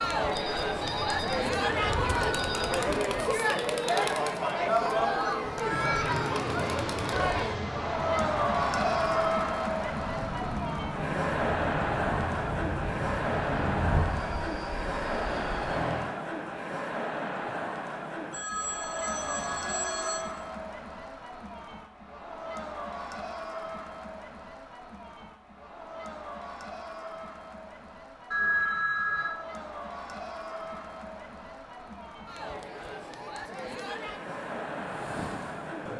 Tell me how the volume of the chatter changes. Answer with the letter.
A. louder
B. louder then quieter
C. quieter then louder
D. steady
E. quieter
E.